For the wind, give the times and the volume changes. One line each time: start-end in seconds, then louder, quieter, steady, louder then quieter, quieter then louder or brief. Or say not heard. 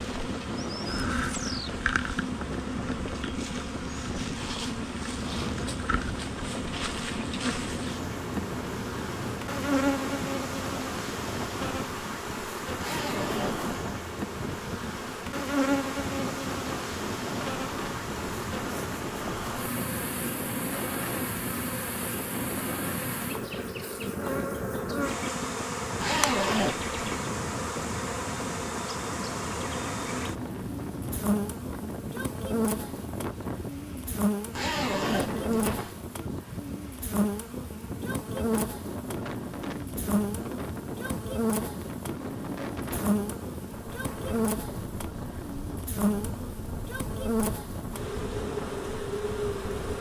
0.0-49.9 steady.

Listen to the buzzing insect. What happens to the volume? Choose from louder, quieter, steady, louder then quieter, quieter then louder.
steady.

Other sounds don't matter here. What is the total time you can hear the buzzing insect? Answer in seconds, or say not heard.
50 s.